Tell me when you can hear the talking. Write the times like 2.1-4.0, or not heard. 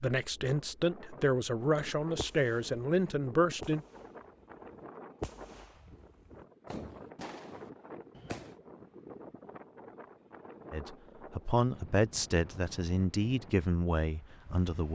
0.0-3.9, 10.7-14.8.